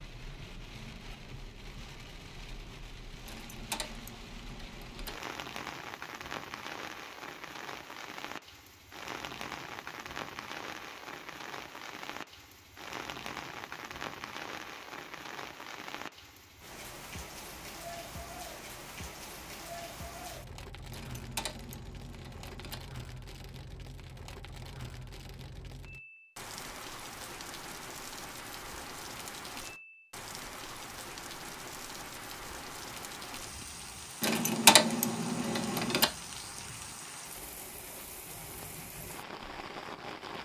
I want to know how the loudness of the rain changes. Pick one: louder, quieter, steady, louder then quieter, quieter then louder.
steady.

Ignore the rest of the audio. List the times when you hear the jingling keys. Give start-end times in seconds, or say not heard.
3.2-5.1, 20.9-22.8, 34.2-36.0.